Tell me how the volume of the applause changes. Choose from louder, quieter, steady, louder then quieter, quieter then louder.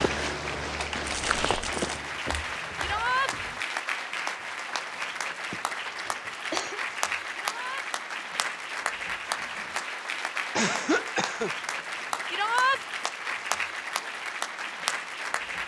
steady.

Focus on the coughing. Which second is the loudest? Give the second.
11 s.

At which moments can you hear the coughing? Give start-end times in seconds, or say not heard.
2.2-3.6, 5.5-6.8, 10.6-11.5.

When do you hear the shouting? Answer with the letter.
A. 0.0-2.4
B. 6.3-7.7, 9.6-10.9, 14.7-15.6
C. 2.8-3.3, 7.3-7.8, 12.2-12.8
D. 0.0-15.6
C.